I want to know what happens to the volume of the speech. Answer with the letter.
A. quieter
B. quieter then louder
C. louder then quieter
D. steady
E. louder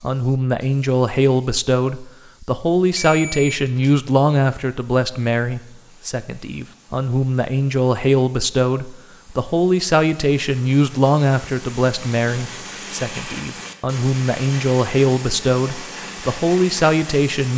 D.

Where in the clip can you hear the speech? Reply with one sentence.
The speech can be heard from 0.0 to 17.5 s.